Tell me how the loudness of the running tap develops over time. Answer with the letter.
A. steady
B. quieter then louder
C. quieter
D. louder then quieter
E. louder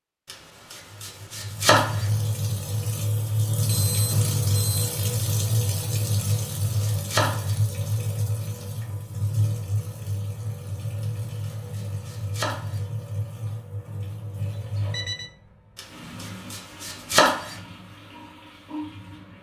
C.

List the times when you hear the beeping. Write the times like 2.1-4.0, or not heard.
3.6-5.0, 14.5-15.3.